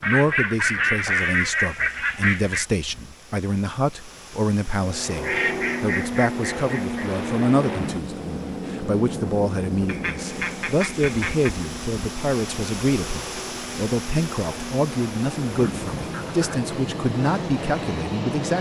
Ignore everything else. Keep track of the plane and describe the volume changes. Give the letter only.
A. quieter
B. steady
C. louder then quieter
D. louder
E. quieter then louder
E.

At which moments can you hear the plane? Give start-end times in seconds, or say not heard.
4.8-18.5.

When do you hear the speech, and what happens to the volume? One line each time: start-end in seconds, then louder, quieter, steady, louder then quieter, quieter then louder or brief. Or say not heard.
0.0-18.5 steady.